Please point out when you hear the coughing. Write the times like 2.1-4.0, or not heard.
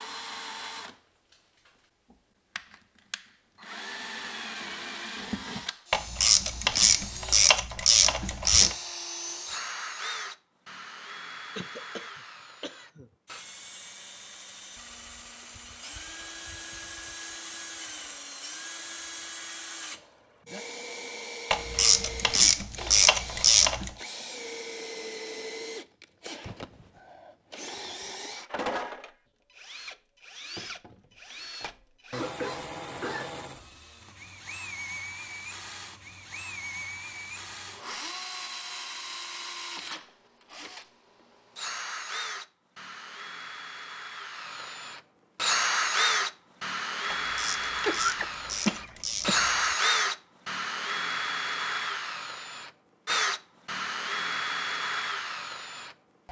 11.6-13.1, 32.1-33.4, 47.9-49.5.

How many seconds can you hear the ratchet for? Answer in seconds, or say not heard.
8 s.